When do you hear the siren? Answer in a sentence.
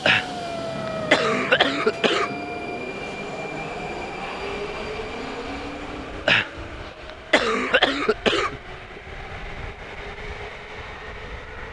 The siren can be heard from 0.0 to 2.8 s.